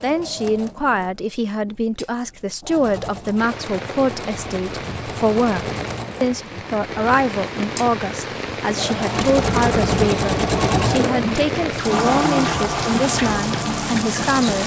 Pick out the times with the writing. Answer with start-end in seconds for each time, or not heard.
not heard.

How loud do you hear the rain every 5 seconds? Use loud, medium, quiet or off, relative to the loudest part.
medium, loud, loud.